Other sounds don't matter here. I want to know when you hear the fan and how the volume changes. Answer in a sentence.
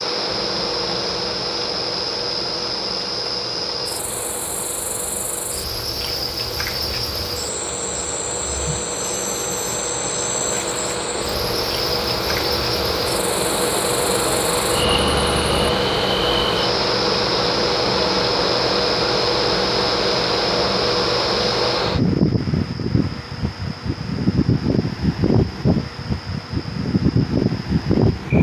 You can hear the fan from 0.0 to 28.3 s, getting louder.